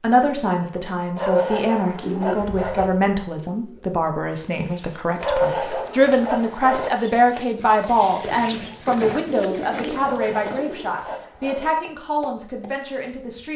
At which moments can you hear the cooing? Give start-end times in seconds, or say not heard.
2.0-3.8, 8.1-10.9.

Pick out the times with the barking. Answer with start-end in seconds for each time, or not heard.
1.1-2.9, 5.2-6.9, 10.0-11.7.